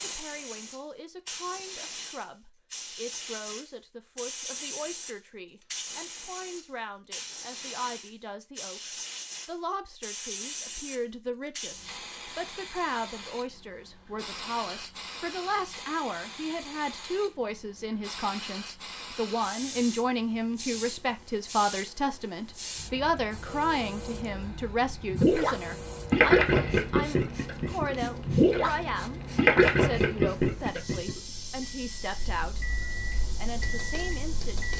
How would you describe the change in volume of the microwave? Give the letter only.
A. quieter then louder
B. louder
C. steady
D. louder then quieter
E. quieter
B.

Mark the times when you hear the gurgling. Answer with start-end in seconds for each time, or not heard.
25.1-28.8, 29.4-31.1.